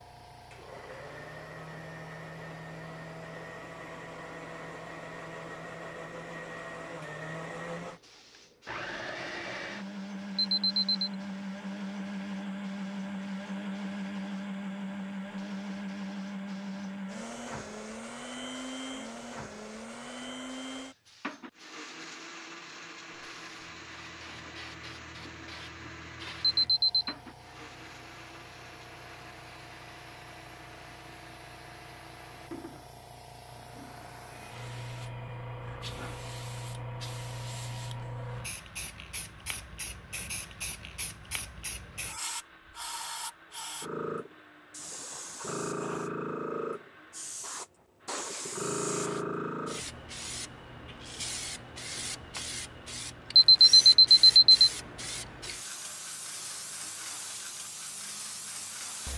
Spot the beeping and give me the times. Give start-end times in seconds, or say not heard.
10.3-11.1, 26.4-27.1, 53.4-54.7.